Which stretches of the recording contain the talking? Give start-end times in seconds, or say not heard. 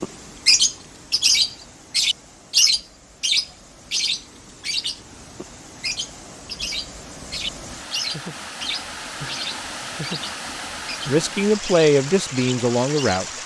11.1-13.2.